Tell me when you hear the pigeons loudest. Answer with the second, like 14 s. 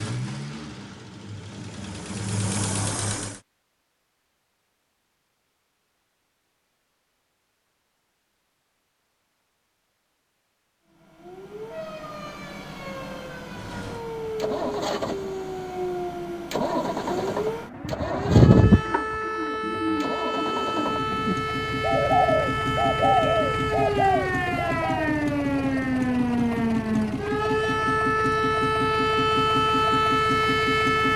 19 s.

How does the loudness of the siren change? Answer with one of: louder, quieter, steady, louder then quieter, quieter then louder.
louder.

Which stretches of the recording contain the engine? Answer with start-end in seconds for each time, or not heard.
0.0-3.4, 13.4-31.1.